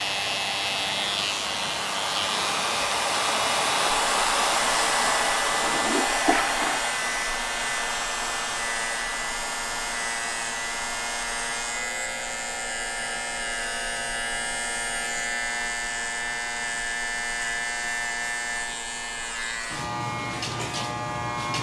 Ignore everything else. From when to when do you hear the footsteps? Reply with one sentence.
You can't hear the footsteps here.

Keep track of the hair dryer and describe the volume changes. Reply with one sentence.
The volume of the hair dryer goes down.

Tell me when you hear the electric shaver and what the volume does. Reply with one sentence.
The electric shaver can be heard from 0.0 to 21.5 s, at a steady volume.